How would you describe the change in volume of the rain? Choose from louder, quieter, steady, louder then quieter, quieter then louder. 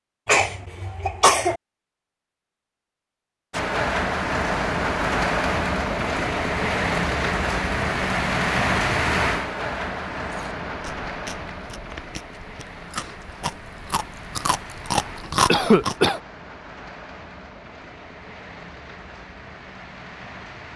quieter.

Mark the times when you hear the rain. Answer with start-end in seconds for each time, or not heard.
3.5-20.7.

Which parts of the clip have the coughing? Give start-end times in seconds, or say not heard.
0.2-1.6, 15.4-16.2.